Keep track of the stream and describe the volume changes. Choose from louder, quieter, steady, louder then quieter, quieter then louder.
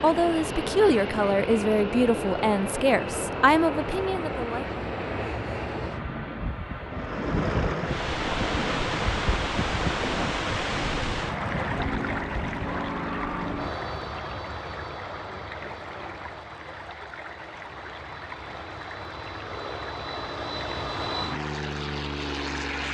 quieter.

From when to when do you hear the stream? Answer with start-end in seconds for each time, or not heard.
6.9-22.8.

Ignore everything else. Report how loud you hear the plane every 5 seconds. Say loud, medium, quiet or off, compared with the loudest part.
loud, loud, loud, medium, loud.